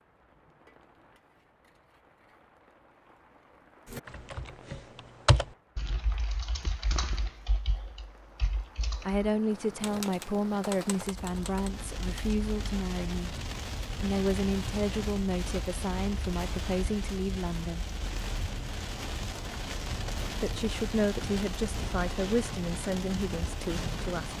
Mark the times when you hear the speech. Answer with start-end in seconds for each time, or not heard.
9.1-13.4, 14.0-17.9, 20.4-24.3.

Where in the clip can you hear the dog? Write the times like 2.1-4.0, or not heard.
not heard.